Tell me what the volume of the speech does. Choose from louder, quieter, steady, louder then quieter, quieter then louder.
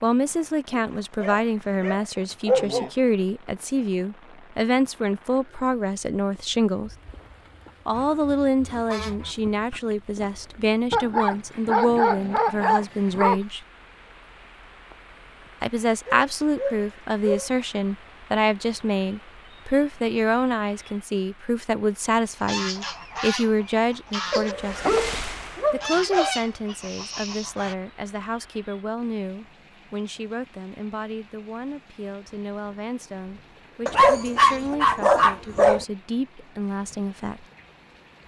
quieter.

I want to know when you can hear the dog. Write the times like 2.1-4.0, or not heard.
1.2-2.9, 10.9-13.4, 16.1-17.5, 24.3-26.4, 33.9-35.9.